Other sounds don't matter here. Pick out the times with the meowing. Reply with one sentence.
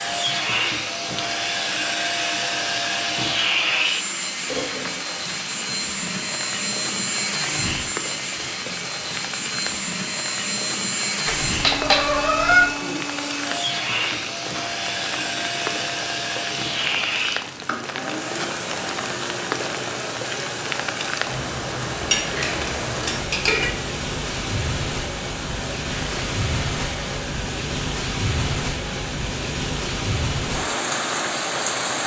You can hear the meowing from 11.2 to 12.7 s.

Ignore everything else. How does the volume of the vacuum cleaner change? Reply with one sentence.
The volume of the vacuum cleaner goes down.